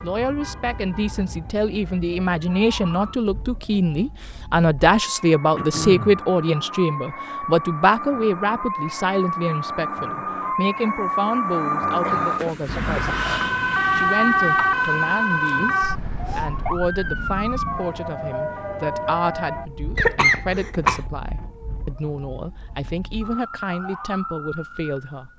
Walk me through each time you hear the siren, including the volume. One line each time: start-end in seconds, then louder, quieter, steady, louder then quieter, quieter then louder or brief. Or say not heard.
0.0-25.3 louder then quieter.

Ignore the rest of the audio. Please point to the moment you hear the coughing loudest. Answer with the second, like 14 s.
20 s.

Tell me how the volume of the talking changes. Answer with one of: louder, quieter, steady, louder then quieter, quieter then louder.
quieter.